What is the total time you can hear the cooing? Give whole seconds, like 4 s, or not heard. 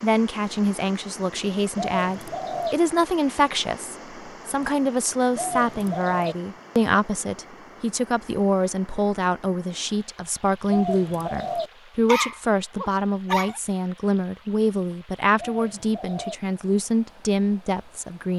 4 s.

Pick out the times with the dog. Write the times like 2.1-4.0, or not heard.
12.1-13.6.